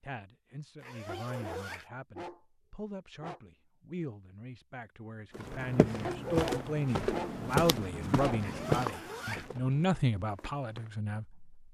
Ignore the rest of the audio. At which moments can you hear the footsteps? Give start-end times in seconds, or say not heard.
5.3-10.9.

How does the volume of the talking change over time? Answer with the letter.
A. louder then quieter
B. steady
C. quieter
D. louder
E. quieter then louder
D.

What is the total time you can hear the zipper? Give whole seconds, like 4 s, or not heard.
2 s.